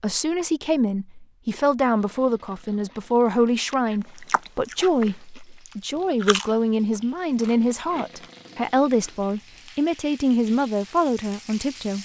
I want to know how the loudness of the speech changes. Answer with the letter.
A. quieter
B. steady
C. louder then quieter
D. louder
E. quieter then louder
B.